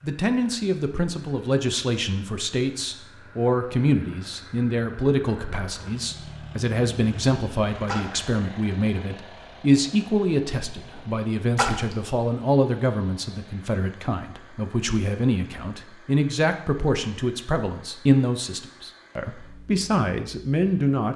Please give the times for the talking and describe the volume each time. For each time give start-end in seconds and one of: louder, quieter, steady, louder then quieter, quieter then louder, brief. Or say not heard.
0.0-21.1 steady.